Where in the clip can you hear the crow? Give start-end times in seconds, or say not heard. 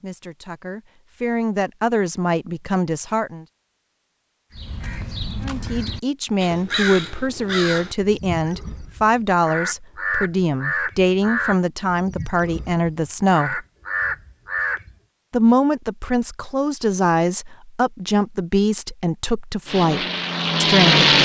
4.5-14.9.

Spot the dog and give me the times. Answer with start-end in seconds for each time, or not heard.
not heard.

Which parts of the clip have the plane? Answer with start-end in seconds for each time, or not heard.
19.6-21.2.